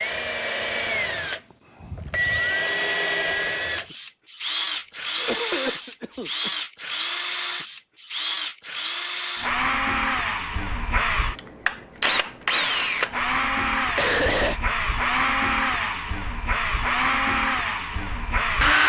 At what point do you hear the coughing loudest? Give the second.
14 s.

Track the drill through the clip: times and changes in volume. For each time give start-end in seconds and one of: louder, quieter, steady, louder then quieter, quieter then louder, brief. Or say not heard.
0.0-18.8 steady.